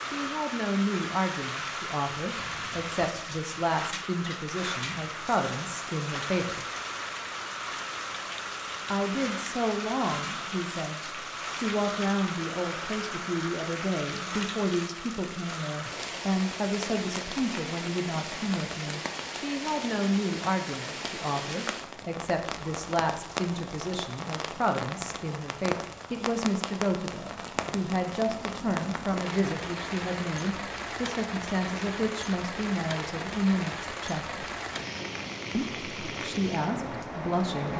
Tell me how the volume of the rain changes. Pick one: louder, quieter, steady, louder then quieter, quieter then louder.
steady.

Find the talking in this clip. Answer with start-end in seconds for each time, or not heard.
0.0-6.7, 8.9-34.5, 35.5-37.7.